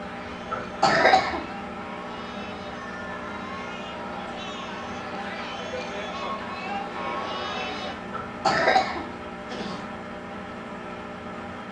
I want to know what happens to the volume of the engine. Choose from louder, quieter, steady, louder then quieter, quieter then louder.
steady.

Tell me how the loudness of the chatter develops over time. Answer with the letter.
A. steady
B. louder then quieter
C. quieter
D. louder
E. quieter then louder
D.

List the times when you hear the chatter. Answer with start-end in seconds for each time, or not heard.
0.0-8.0.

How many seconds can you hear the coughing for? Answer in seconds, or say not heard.
3 s.